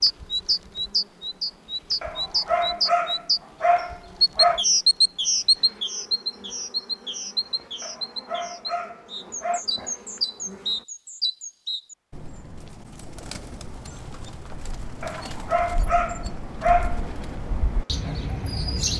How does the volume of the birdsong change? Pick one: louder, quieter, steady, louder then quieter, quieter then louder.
quieter then louder.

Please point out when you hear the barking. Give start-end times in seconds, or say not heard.
2.0-4.7, 7.8-9.6, 15.0-17.0.